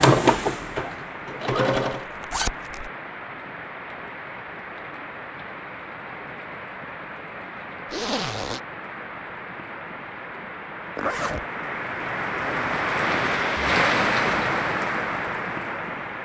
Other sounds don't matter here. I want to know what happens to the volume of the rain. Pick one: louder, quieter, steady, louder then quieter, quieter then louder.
louder.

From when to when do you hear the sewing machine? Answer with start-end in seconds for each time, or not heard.
0.0-2.0.